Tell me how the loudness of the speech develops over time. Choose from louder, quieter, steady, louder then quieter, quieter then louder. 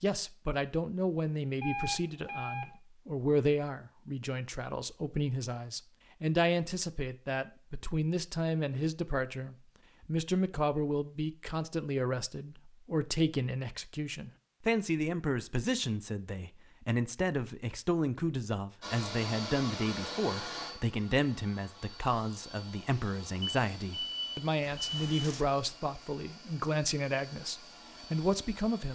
steady.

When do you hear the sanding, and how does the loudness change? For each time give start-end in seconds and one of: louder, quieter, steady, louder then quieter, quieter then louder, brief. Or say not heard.
not heard.